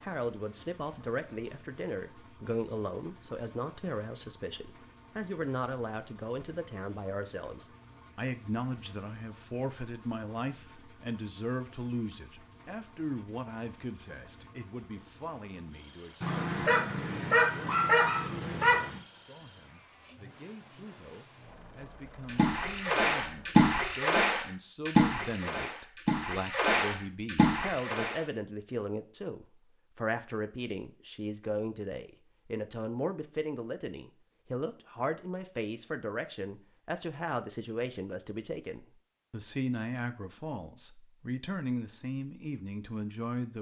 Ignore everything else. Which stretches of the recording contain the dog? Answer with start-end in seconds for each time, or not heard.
16.2-19.0.